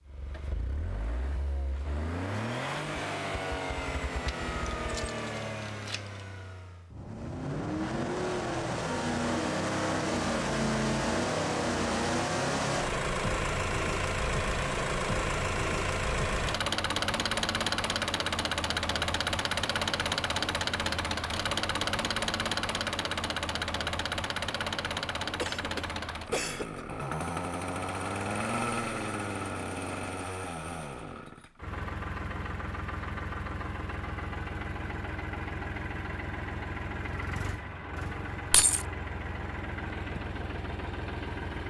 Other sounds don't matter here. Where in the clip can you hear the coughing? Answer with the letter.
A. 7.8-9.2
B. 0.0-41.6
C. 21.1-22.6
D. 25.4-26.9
D.